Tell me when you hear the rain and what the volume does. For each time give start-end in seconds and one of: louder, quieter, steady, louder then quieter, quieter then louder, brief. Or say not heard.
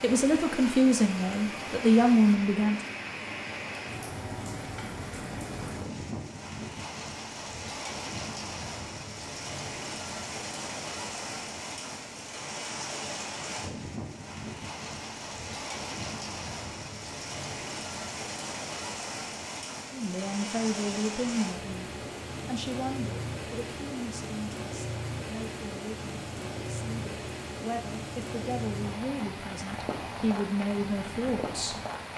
0.0-32.1 steady.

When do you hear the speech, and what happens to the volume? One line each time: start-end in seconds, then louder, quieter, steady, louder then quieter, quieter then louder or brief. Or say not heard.
0.0-2.8 brief
19.9-31.8 quieter then louder.